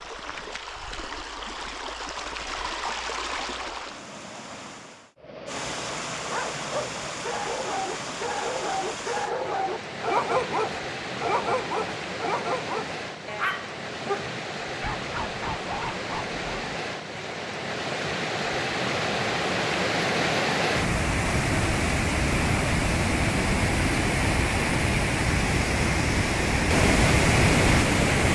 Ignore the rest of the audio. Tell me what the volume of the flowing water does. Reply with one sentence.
The volume of the flowing water goes up.